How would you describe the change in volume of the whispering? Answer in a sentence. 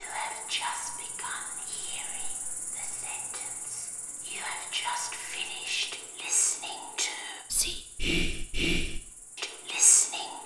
The loudness of the whispering goes down, then up.